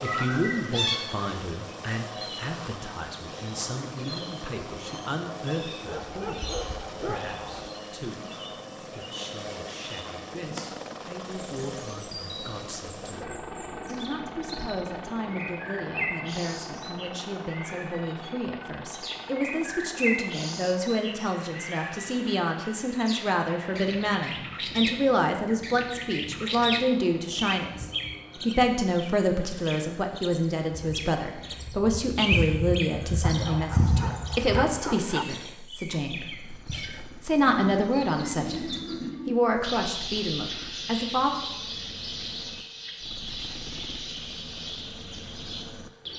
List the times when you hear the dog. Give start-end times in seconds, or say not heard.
5.8-7.7, 33.2-35.2.